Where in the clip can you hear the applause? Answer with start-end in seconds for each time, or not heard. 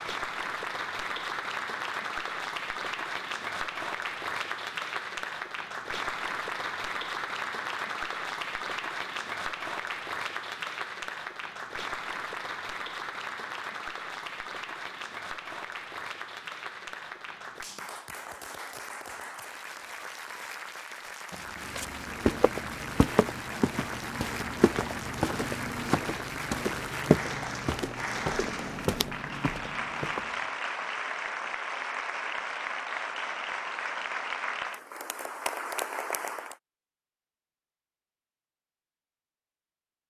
0.0-36.6.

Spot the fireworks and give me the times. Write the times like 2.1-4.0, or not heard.
not heard.